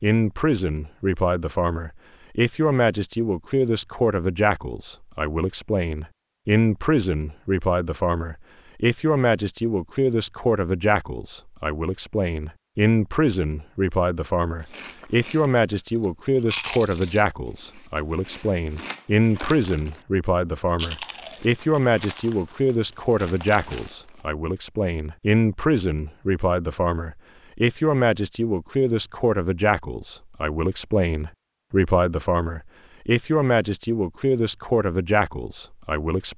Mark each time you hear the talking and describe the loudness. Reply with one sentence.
The talking can be heard from 0.0 to 36.3 s, at a steady volume.